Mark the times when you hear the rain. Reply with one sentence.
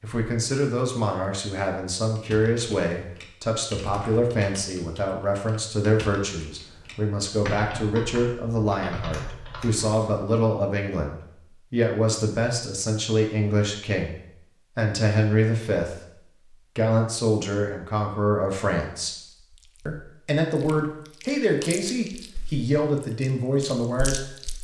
The rain can't be heard in this clip.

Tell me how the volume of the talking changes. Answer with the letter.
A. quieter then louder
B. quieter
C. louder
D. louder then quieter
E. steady
E.